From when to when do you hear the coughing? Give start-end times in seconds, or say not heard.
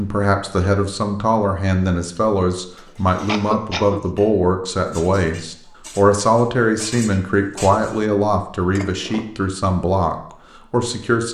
3.2-4.0.